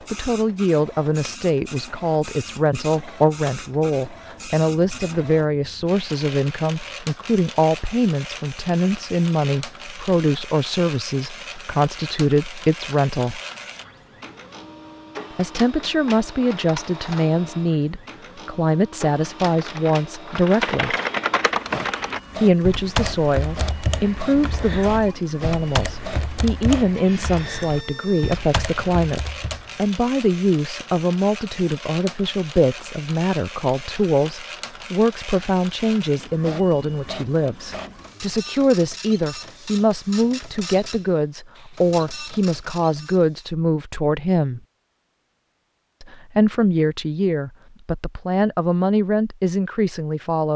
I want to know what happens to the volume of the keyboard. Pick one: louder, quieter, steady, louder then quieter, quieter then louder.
quieter.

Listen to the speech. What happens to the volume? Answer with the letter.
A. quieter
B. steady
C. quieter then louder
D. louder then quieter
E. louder
B.